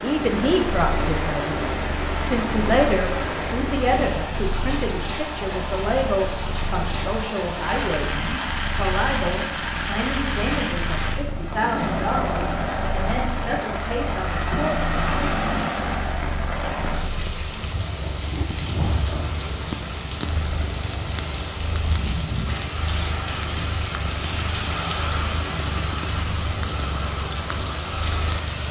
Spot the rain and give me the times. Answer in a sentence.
The rain can be heard from 0.0 to 28.6 s.